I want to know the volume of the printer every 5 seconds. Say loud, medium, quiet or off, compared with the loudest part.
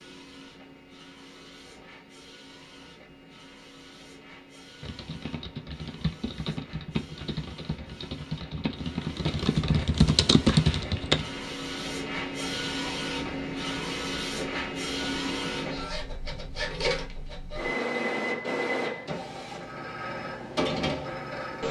quiet, quiet, loud, loud, loud.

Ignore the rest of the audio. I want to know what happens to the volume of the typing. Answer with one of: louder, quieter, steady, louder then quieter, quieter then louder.
louder.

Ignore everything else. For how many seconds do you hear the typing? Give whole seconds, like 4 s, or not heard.
7 s.